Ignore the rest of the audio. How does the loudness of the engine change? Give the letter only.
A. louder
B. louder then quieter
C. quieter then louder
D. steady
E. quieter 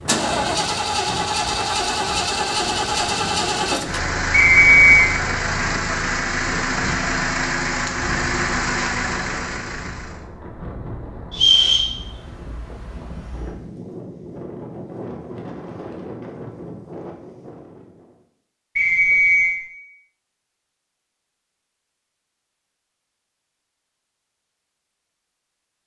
D.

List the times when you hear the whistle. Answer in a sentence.
The whistle can be heard from 4.3 to 5.0 s, from 11.3 to 11.9 s and from 18.8 to 19.6 s.